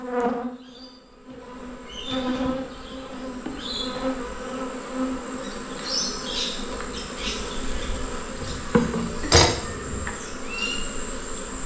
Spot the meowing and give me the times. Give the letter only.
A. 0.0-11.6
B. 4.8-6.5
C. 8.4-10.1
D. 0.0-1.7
C.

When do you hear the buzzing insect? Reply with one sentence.
The buzzing insect can be heard from 0.0 to 11.6 s.